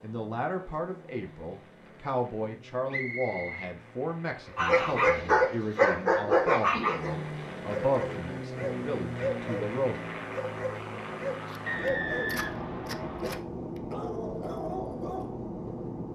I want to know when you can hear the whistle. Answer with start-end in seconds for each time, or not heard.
2.9-3.8, 11.7-13.4.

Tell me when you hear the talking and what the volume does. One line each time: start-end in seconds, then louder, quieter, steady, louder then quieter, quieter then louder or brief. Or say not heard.
0.0-9.9 steady.